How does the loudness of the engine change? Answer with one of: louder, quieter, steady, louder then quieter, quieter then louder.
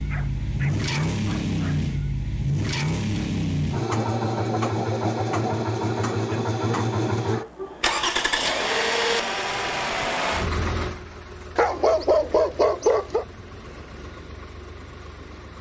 quieter.